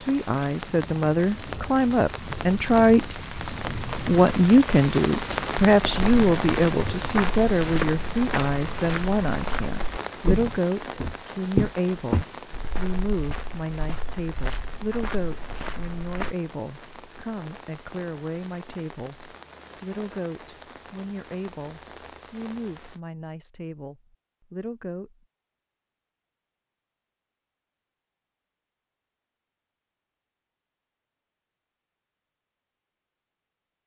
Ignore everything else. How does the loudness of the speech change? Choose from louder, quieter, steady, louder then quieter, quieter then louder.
quieter.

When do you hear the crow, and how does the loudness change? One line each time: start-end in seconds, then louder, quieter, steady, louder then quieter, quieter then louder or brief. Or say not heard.
not heard.